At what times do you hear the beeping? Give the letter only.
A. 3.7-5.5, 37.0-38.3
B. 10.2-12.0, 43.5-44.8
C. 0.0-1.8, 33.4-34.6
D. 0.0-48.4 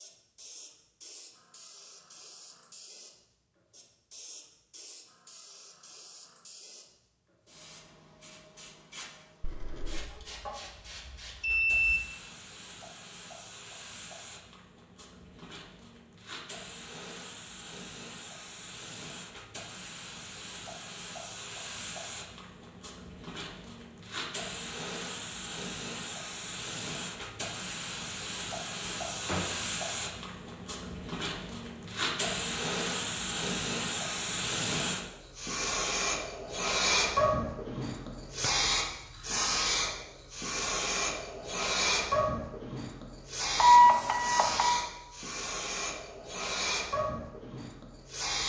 B.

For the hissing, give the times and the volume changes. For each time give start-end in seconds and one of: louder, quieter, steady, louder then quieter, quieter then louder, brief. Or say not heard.
0.0-48.4 louder.